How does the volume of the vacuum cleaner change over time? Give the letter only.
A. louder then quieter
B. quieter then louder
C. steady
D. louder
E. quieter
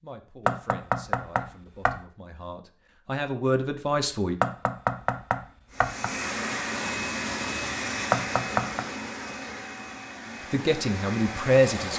E.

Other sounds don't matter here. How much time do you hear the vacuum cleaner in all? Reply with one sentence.
You can hear the vacuum cleaner for 6 seconds altogether.